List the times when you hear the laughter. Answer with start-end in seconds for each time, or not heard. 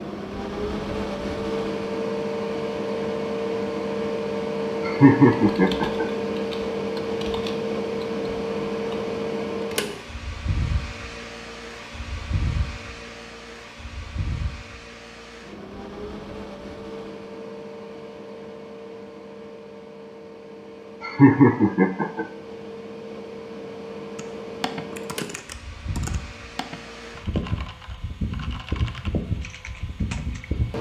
4.8-6.0, 21.0-22.2.